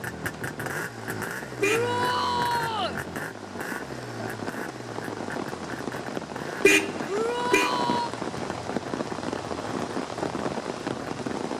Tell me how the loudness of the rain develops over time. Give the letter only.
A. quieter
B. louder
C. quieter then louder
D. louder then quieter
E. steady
B.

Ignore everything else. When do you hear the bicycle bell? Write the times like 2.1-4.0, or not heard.
not heard.